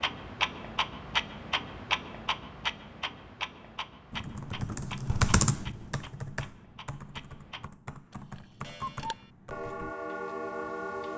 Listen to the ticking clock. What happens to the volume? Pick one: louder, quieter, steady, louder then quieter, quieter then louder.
quieter then louder.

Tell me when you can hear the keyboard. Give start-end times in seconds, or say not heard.
4.1-9.9.